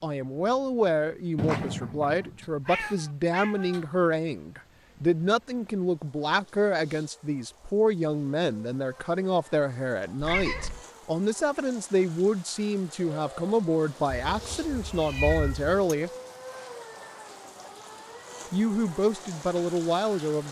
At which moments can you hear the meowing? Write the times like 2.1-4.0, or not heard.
1.4-3.9, 10.2-10.8, 14.2-15.8.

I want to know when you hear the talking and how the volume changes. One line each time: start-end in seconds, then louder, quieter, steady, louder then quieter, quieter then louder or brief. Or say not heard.
0.0-16.1 steady
18.5-20.4 brief.